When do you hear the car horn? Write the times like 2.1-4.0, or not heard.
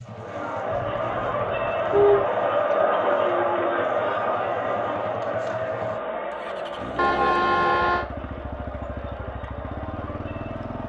0.7-2.2, 7.0-8.1.